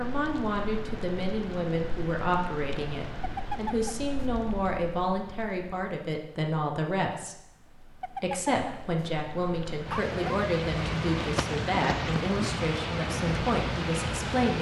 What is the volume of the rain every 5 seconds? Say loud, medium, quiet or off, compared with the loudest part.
medium, quiet, loud.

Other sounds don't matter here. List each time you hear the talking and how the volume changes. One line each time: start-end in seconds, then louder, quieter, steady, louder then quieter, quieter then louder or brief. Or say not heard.
0.0-14.5 steady.